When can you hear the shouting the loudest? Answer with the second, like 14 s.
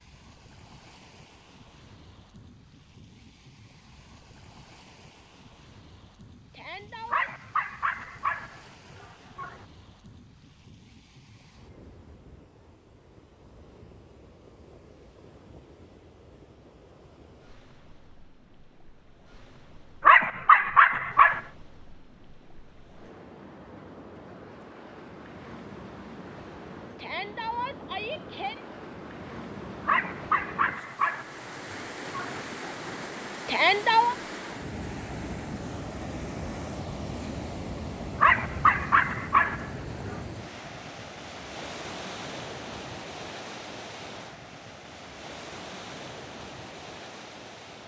34 s.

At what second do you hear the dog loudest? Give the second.
21 s.